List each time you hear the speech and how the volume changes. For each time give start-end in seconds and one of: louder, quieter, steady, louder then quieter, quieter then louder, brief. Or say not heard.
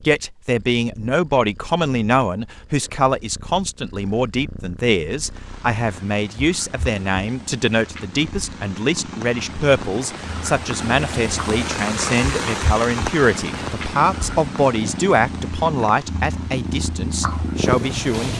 0.0-18.3 steady.